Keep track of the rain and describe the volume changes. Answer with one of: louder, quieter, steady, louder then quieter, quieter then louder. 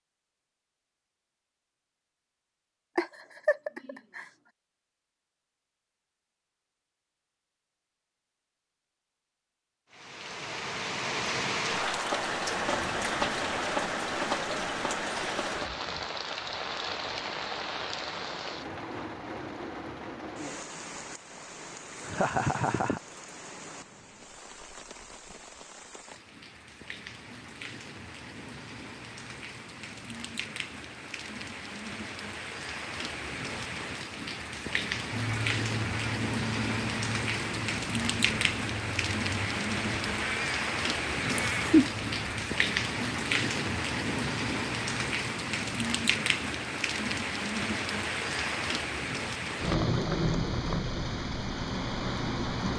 quieter then louder.